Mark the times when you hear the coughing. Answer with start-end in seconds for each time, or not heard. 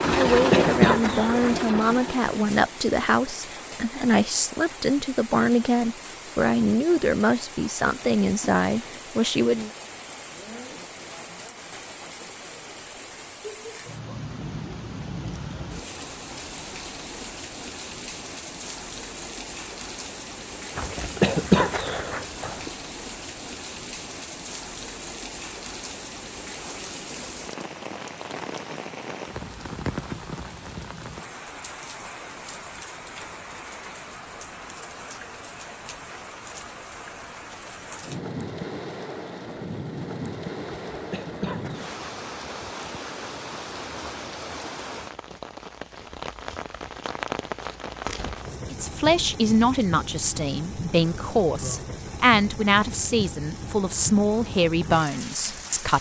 0.1-2.0, 20.8-22.7, 40.9-42.0.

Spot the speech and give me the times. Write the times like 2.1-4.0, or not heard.
0.0-9.7, 48.7-55.9.